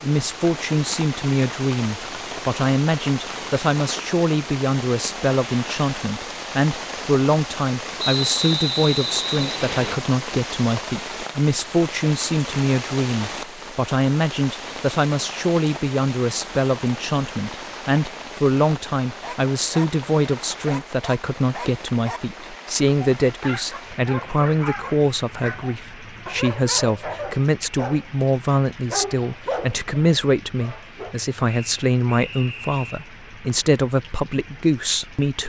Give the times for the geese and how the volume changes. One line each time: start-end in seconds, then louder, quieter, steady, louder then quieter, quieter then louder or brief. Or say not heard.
not heard.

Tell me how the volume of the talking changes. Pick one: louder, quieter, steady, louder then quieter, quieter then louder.
steady.